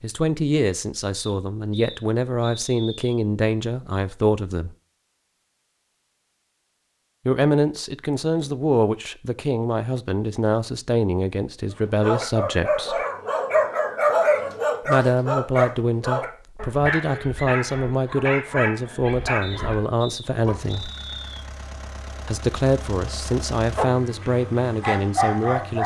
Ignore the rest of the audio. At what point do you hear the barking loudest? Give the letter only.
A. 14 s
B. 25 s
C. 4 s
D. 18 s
A.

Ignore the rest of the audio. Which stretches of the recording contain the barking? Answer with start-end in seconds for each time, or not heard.
12.0-20.6, 23.8-25.8.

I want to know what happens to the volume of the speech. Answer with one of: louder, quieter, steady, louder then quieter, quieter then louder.
steady.